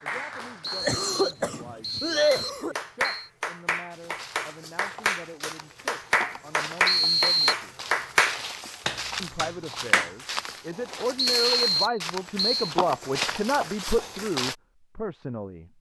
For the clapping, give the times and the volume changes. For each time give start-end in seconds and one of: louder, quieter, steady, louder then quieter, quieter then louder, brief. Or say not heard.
0.0-10.2 louder.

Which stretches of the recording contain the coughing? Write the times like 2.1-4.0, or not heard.
0.8-2.8.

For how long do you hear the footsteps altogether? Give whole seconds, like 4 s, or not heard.
11 s.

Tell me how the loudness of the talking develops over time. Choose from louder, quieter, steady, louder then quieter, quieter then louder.
louder.